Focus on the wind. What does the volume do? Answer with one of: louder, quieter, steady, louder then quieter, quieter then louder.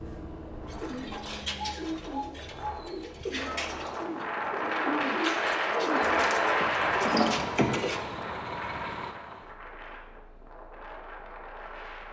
louder then quieter.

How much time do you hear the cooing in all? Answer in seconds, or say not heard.
7 s.